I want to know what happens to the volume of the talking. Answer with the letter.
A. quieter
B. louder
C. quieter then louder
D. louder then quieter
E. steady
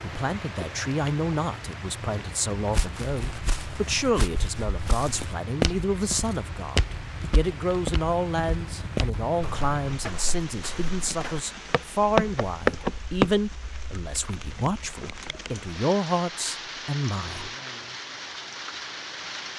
E.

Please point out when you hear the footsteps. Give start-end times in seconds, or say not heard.
2.7-13.3.